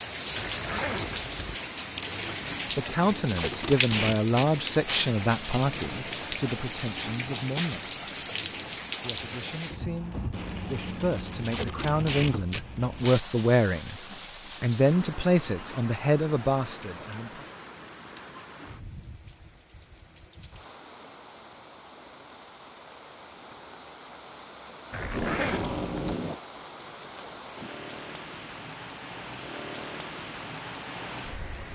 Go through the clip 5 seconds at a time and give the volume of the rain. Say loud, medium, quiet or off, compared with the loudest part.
loud, loud, medium, medium, quiet, medium, medium.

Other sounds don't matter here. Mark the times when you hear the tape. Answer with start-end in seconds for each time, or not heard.
3.2-5.0, 11.4-13.2, 25.0-26.4.